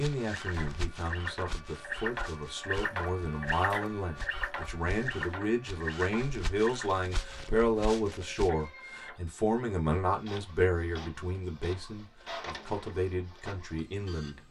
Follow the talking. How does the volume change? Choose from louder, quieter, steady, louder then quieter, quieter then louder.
louder then quieter.